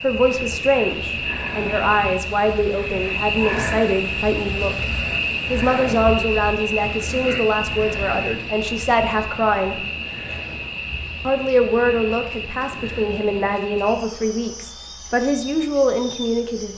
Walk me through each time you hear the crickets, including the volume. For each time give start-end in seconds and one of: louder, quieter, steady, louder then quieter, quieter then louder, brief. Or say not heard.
0.0-16.7 quieter.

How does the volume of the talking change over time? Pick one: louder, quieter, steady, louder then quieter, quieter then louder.
steady.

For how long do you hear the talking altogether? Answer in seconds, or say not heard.
15 s.